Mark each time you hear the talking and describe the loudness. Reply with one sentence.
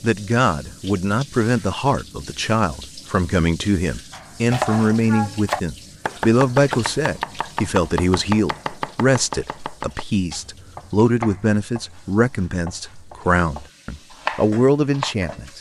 You can hear the talking from 0.0 to 15.5 s, at a steady volume.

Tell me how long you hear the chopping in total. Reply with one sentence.
You can hear the chopping for 11 seconds altogether.